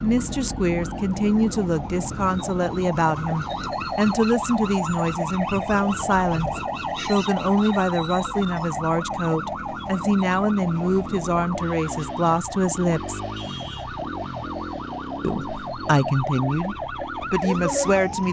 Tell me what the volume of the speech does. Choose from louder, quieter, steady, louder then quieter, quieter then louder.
steady.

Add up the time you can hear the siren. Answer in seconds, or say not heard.
18 s.